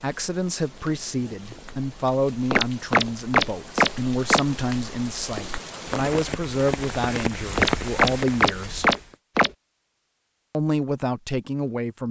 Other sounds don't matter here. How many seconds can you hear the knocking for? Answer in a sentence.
The knocking can be heard for 4 seconds in total.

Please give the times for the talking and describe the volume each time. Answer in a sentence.
You can hear the talking from 0.0 to 8.9 s, at a steady volume; and briefly from 10.5 to 12.0 s.